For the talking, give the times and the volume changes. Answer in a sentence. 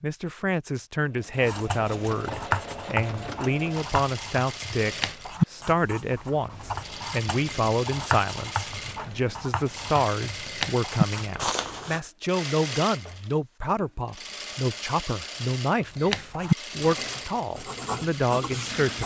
The talking can be heard from 0.0 to 19.0 s, at a steady volume.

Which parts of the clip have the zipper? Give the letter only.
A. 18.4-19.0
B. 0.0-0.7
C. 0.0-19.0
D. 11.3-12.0
D.